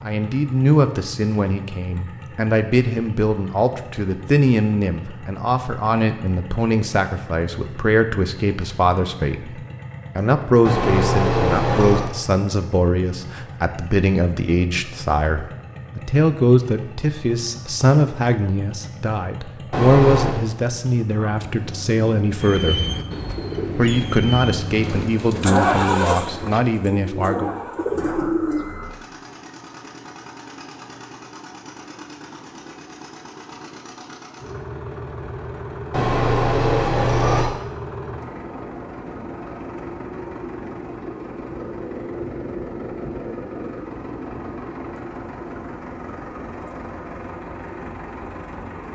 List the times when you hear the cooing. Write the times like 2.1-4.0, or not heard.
22.4-28.6.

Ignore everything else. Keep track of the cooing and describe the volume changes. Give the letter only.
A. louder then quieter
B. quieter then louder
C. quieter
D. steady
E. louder
B.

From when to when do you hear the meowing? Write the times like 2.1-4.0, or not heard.
10.7-12.1, 19.7-20.4, 35.9-37.5.